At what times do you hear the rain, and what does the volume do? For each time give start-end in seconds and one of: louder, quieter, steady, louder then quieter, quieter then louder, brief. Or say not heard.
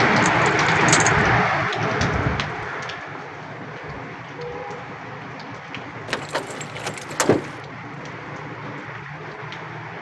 0.0-9.9 quieter.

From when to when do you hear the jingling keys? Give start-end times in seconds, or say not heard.
0.2-1.2, 6.0-7.5.